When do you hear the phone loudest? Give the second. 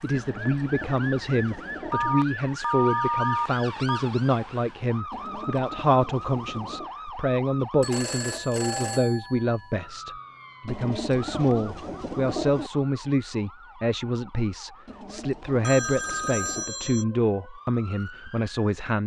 3 s.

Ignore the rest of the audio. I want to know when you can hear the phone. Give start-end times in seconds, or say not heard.
1.9-4.0, 7.8-9.7, 15.6-17.1.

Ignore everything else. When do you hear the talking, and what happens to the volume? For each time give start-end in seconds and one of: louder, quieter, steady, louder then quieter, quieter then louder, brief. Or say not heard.
0.0-19.0 steady.